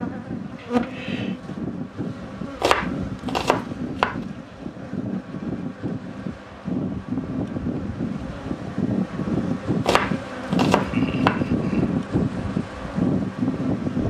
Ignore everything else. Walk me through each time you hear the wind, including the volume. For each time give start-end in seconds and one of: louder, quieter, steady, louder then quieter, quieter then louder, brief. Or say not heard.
0.0-14.0 louder.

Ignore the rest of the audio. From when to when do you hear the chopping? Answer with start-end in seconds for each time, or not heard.
2.6-4.2, 9.8-11.5.